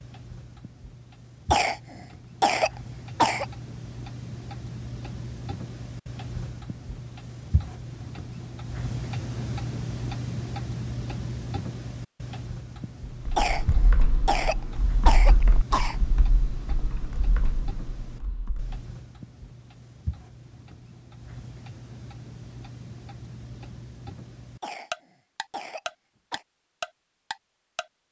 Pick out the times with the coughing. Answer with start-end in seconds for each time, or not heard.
1.5-3.5, 13.3-15.9, 24.6-26.4.